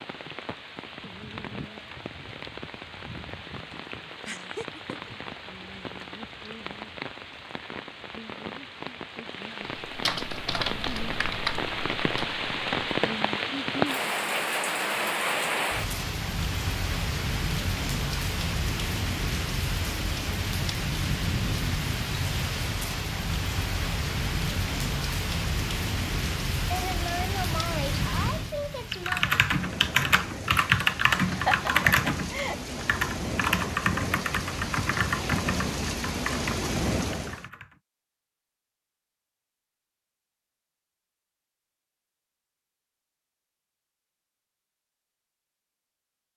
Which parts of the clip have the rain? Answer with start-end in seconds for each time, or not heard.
0.0-37.5.